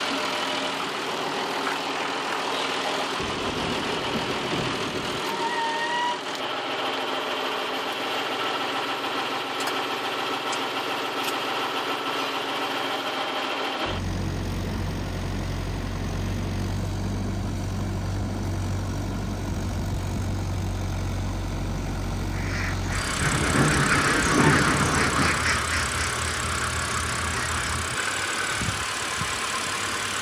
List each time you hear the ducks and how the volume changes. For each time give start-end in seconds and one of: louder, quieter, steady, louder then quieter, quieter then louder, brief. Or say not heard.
22.3-28.1 louder then quieter.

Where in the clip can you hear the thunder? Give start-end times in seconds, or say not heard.
3.2-5.2, 22.9-25.5.